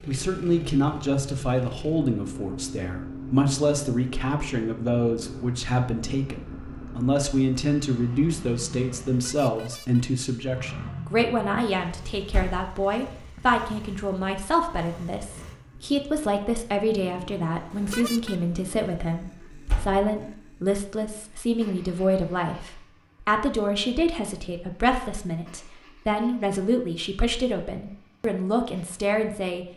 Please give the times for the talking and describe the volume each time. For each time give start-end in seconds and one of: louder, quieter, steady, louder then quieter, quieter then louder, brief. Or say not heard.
0.1-29.6 steady.